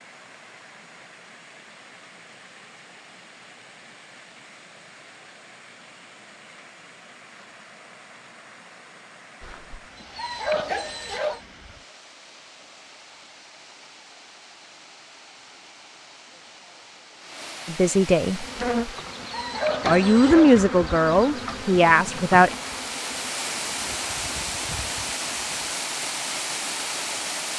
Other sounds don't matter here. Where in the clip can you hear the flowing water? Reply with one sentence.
You can hear the flowing water from 0.0 to 27.5 s.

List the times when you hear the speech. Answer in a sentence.
You can hear the speech from 17.6 to 18.4 s and from 19.9 to 22.6 s.